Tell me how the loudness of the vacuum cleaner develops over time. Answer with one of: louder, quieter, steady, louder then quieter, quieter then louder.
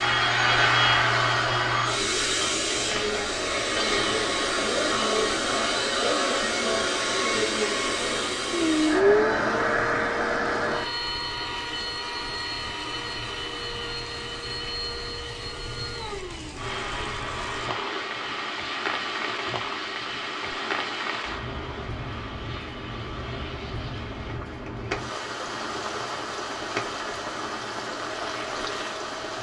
quieter.